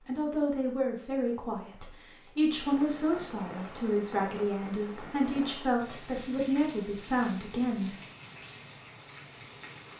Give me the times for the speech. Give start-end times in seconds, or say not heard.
0.1-8.0.